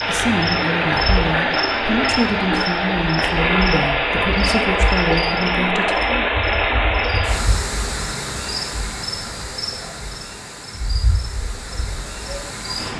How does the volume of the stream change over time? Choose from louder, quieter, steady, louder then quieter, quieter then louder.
quieter.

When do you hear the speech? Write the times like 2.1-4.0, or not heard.
0.1-6.3.